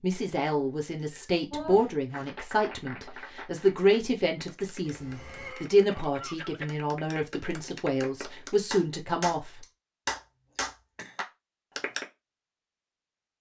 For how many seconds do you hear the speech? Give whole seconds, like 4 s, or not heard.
10 s.